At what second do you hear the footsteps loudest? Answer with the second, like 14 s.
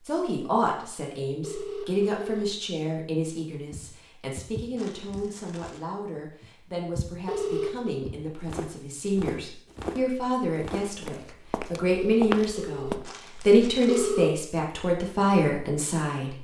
12 s.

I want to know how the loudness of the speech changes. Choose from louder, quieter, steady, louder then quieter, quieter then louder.
quieter then louder.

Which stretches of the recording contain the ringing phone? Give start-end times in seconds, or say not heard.
1.4-2.5, 7.2-8.0, 11.9-14.3.